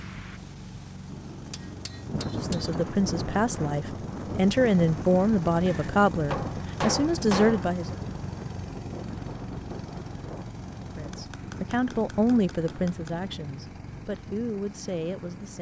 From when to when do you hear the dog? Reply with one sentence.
The dog can't be heard in this clip.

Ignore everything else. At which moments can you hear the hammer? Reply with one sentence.
The hammer can be heard from 1.1 to 2.8 s, from 5.7 to 7.7 s and from 11.1 to 13.2 s.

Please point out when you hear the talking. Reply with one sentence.
You can hear the talking from 2.2 to 8.0 s and from 10.8 to 15.5 s.